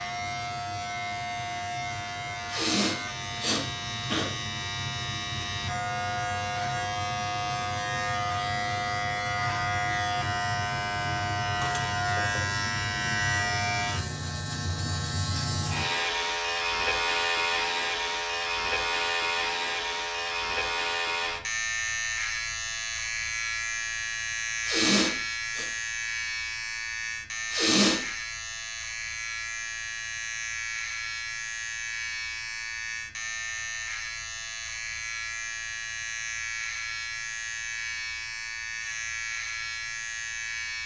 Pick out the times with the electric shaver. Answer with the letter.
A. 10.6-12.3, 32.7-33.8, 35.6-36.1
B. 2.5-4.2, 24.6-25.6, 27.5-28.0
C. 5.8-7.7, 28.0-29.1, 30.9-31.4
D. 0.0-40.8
D.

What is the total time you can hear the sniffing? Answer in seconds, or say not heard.
3 s.